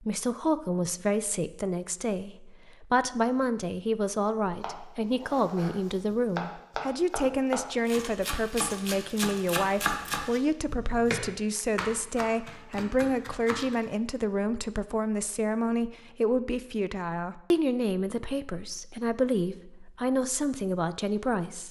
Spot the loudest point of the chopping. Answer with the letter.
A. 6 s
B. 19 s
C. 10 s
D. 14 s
C.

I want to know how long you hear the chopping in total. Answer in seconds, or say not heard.
9 s.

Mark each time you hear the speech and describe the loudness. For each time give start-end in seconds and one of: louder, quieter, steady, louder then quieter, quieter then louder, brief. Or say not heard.
0.0-21.6 steady.